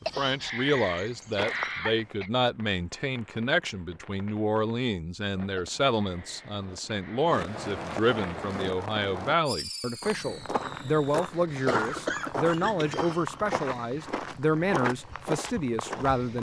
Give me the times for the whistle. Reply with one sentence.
You can't hear the whistle here.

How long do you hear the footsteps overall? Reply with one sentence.
The footsteps can be heard for 8 seconds in total.